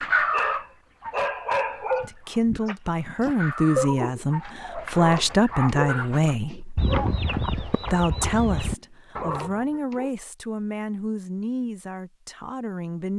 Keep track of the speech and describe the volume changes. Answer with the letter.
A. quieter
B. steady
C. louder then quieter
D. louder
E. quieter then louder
A.